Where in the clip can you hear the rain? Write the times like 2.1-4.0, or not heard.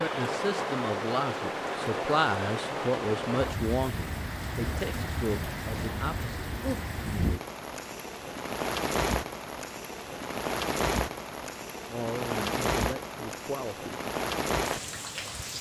0.0-15.5.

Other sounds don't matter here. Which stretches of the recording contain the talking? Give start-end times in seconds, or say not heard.
0.0-6.3, 11.9-13.9.